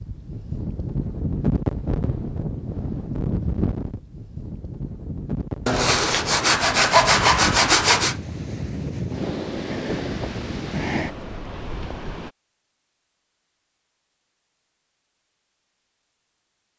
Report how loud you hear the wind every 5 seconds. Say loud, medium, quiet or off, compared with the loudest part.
loud, loud, loud, off.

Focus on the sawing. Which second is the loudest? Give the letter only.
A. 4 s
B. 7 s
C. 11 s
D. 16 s
B.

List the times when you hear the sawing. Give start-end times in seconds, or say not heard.
5.7-8.2.